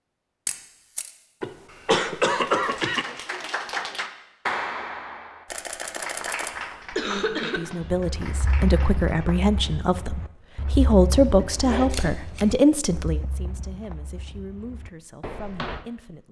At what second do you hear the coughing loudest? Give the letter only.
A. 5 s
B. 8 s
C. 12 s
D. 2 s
D.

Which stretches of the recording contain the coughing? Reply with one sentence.
The coughing can be heard from 1.4 to 3.0 s, from 7.0 to 7.8 s and from 11.3 to 12.1 s.